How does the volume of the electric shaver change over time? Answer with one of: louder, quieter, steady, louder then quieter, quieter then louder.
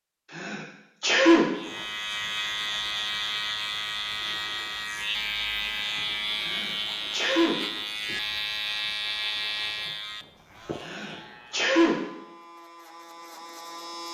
quieter.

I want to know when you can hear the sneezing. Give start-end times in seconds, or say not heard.
0.3-1.4, 6.4-7.5, 10.8-11.9.